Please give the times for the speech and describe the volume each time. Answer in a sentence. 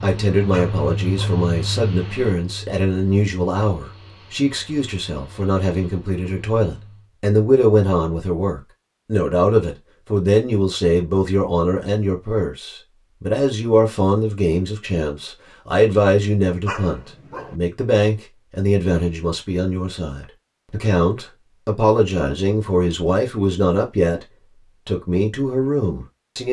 The speech can be heard from 0.0 to 24.2 s, at a steady volume; and briefly from 24.9 to 26.4 s.